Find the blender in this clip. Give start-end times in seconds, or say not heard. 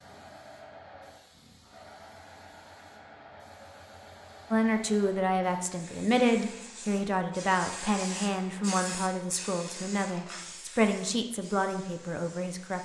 not heard.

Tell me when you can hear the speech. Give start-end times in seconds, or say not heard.
4.5-12.8.